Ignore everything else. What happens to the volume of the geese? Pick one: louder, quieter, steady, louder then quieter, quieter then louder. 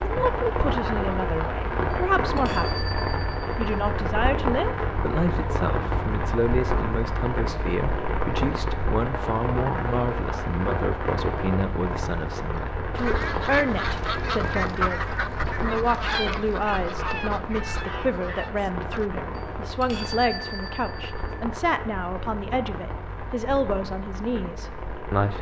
quieter.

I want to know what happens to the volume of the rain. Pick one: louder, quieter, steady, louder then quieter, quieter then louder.
quieter.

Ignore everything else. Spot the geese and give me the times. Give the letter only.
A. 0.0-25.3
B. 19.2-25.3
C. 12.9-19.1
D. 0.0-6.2
C.